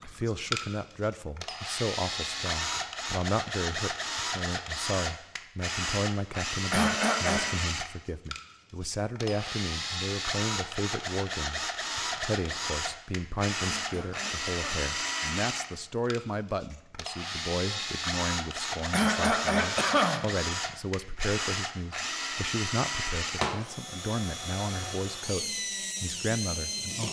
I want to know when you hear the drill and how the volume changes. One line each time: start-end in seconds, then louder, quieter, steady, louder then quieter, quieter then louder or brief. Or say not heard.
0.0-27.0 steady.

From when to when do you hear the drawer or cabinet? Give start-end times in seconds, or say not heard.
not heard.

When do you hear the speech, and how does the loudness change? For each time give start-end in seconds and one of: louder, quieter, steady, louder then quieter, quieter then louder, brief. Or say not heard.
0.0-27.0 steady.